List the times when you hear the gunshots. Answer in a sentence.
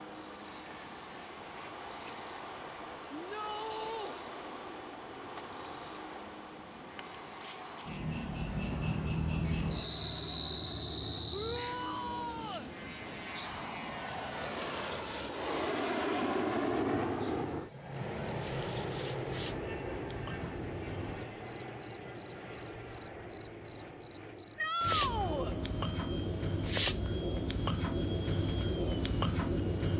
You can't hear the gunshots here.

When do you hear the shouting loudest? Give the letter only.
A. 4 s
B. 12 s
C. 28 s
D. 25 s
D.